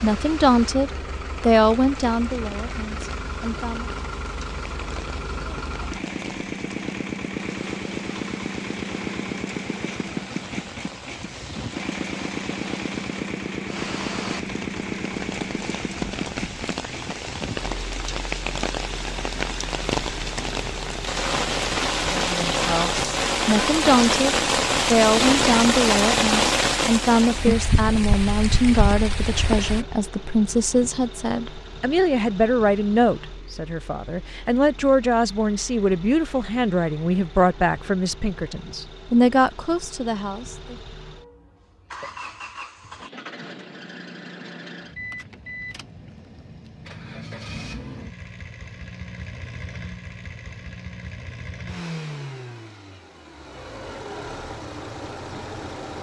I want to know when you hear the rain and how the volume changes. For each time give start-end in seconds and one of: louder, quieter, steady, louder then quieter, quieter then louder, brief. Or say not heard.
0.0-29.9 louder.